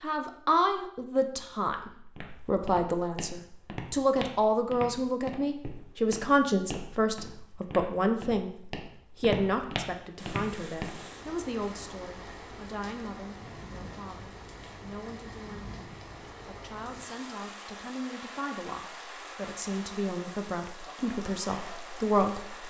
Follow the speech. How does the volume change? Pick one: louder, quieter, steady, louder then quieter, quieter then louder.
quieter then louder.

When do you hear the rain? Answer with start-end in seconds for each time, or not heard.
10.2-22.6.